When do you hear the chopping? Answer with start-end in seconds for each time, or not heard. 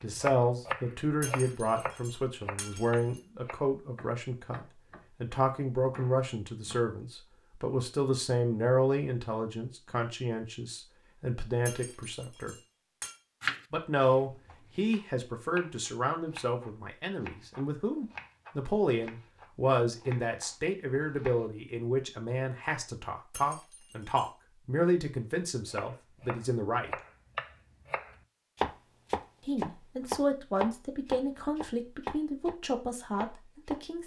0.0-6.8, 13.4-21.5, 25.6-32.5, 33.1-33.8.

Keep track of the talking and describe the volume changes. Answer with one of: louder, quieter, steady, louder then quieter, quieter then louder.
steady.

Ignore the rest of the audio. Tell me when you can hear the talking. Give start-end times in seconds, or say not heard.
0.0-12.6, 13.7-26.9, 29.4-34.0.